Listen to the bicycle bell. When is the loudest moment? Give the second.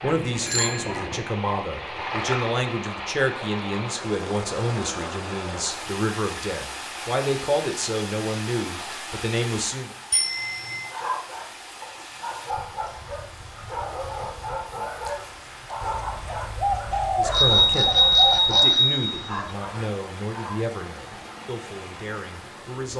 18 s.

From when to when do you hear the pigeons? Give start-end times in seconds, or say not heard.
15.8-18.6.